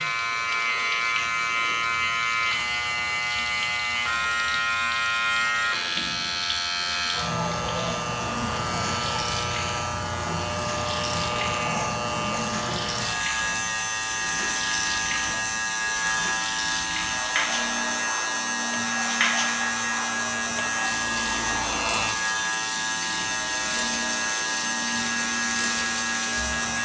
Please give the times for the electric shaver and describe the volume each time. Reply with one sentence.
The electric shaver can be heard from 0.0 to 26.8 s, at a steady volume.